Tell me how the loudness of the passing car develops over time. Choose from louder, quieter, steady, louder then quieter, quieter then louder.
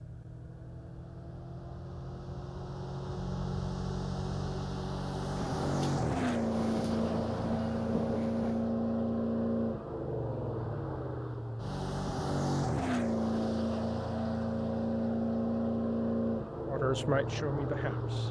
louder.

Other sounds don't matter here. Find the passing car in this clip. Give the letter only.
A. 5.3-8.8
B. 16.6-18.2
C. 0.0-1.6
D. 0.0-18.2
D.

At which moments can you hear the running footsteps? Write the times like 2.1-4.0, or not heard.
not heard.